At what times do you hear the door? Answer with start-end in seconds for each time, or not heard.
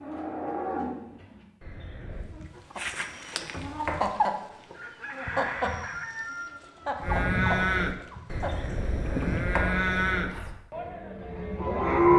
3.4-4.1, 9.1-10.6.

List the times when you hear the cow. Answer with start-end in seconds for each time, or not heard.
0.0-2.3, 7.0-12.1.